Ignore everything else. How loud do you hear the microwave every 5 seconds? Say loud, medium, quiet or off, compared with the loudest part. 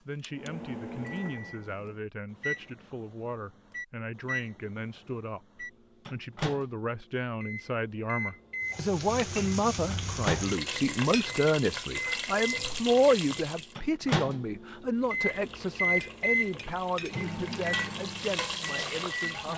medium, medium, loud, loud.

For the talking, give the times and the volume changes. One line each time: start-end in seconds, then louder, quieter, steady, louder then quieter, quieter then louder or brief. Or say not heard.
0.1-19.5 louder then quieter.